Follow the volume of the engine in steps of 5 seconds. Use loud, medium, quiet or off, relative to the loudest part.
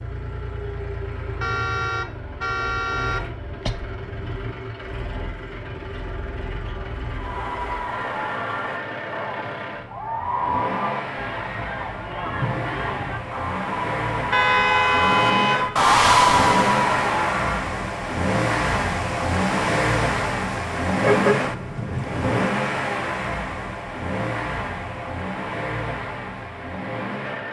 medium, medium, medium, loud, loud, medium.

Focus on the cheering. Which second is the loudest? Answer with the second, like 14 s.
16 s.